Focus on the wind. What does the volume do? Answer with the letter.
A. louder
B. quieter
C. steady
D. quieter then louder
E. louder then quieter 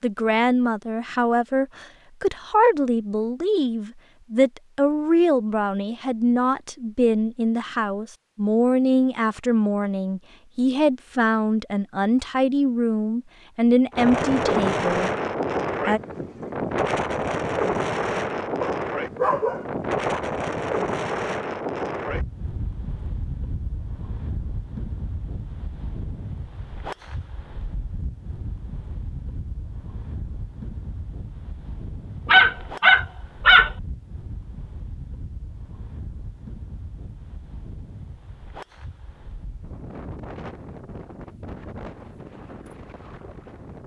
B.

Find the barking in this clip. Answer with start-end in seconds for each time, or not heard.
18.6-20.2, 32.2-33.7.